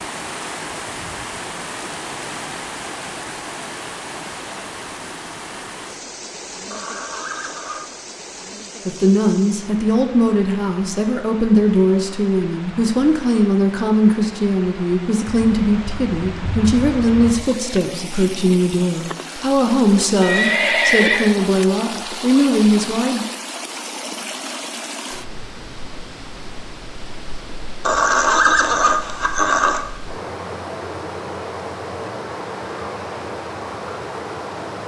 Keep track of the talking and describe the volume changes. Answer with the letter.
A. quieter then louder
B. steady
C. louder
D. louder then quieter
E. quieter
B.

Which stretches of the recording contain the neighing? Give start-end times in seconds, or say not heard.
6.7-8.0, 20.2-21.4, 27.8-29.8.